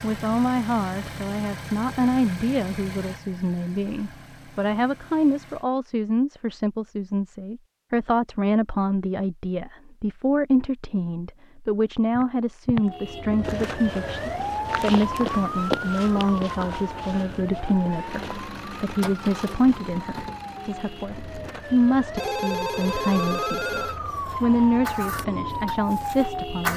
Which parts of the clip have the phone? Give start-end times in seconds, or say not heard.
22.1-24.0.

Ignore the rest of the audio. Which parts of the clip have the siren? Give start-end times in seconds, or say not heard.
12.8-26.7.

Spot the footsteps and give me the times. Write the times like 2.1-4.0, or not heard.
12.2-18.4.